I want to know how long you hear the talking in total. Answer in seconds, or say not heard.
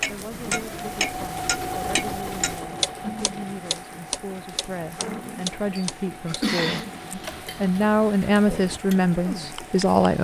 10 s.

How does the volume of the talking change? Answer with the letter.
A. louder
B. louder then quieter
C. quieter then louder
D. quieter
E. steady
A.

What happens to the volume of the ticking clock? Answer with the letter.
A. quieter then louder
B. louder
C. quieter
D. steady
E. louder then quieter
C.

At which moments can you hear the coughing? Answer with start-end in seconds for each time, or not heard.
5.8-6.8.